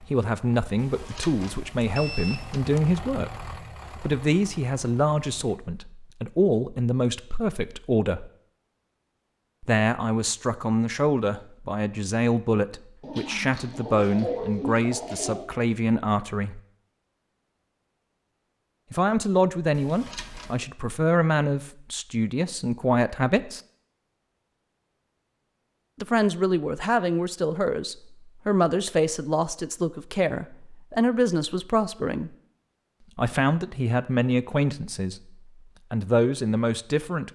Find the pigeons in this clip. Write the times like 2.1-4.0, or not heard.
13.0-15.4.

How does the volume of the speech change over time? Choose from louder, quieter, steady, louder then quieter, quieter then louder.
steady.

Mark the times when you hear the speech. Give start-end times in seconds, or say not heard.
0.0-8.3, 9.6-16.6, 18.9-23.6, 26.0-32.3, 33.1-37.3.